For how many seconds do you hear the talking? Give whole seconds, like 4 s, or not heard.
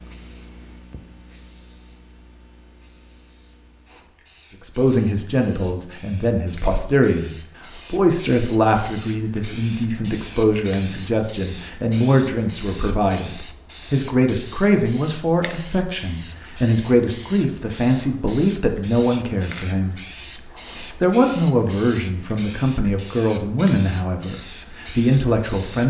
20 s.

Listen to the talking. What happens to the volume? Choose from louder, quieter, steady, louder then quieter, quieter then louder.
steady.